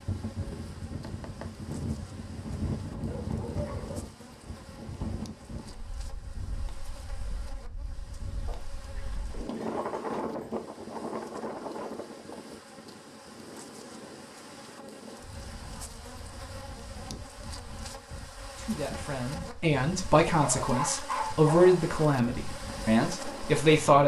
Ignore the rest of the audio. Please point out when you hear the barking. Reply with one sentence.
You can hear the barking from 3.1 to 4.2 s, from 8.4 to 10.7 s and from 20.4 to 21.9 s.